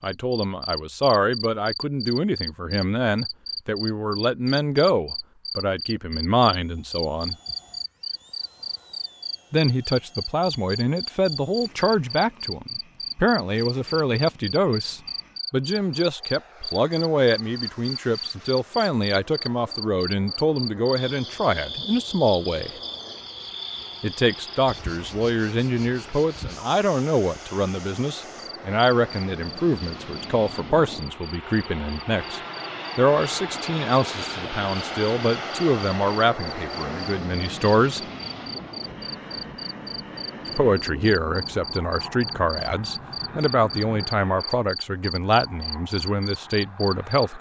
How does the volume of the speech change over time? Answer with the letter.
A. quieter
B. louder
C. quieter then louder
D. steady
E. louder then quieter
D.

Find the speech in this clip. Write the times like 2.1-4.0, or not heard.
0.0-7.3, 9.5-22.7, 24.0-38.0, 40.5-47.3.